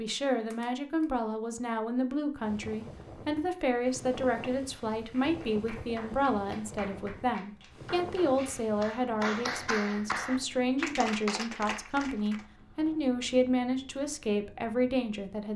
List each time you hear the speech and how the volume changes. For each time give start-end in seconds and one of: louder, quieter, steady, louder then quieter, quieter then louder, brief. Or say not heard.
0.0-15.5 steady.